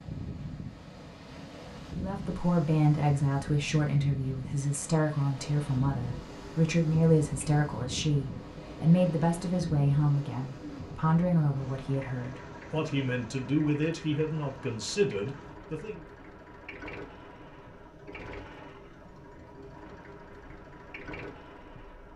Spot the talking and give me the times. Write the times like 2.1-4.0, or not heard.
1.9-16.1.